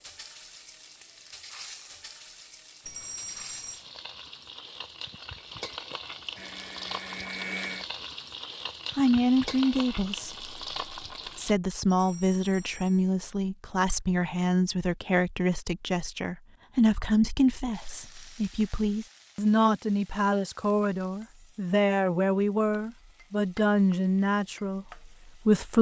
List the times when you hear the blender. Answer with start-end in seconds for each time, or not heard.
6.3-8.1.